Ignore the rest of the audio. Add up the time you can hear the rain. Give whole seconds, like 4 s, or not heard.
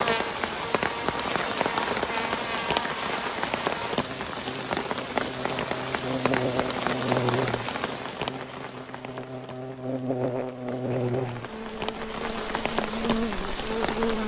14 s.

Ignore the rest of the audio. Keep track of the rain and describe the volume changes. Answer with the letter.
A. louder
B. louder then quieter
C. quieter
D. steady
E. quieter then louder
E.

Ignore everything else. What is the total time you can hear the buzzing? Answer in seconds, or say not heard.
14 s.